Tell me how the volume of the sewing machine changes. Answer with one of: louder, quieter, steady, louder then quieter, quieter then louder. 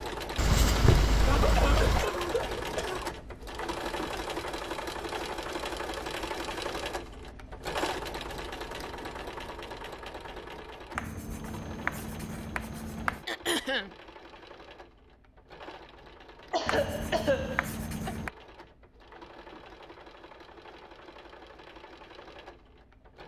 quieter.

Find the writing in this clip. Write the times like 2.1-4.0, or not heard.
0.3-2.0, 10.9-13.2, 16.6-18.3.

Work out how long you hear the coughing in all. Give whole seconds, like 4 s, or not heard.
4 s.